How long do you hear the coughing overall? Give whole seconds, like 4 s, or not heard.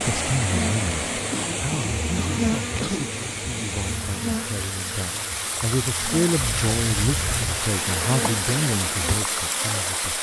3 s.